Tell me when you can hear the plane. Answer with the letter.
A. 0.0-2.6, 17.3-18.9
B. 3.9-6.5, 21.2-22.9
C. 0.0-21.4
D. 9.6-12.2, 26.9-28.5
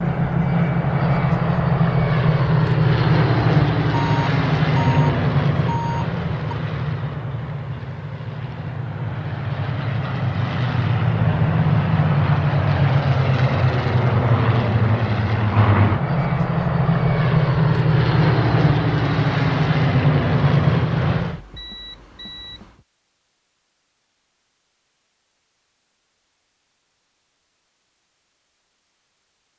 C.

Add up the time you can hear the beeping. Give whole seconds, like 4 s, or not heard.
4 s.